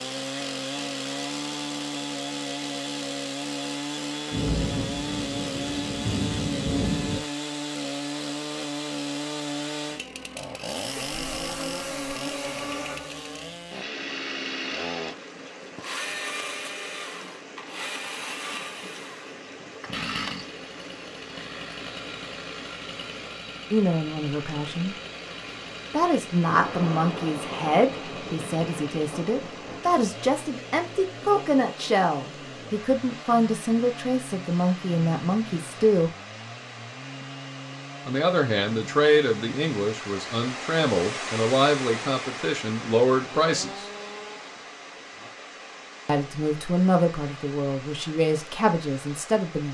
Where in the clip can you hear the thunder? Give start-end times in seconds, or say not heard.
4.3-7.2, 26.4-30.1.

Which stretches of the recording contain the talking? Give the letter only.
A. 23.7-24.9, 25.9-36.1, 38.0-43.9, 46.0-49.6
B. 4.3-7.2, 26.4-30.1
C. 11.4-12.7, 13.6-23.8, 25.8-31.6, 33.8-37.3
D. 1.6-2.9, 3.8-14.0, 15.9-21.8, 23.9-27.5
A.